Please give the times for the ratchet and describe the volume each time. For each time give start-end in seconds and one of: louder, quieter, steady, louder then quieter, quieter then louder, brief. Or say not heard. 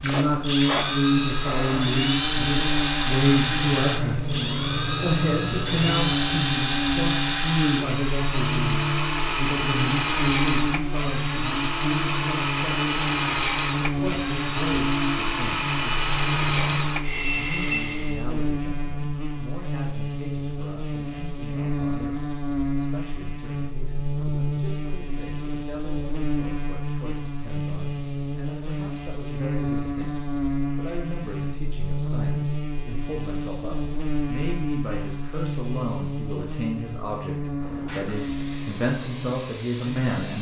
not heard.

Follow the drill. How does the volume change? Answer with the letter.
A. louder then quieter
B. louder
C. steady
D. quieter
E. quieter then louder
C.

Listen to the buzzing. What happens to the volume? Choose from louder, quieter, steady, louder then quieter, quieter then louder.
steady.